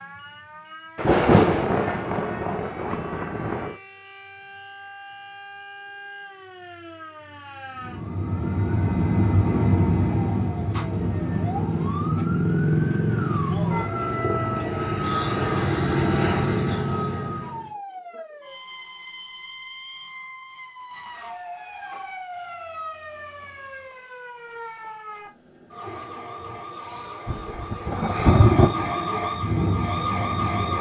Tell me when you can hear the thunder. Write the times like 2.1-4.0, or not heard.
0.9-3.8, 27.2-28.9.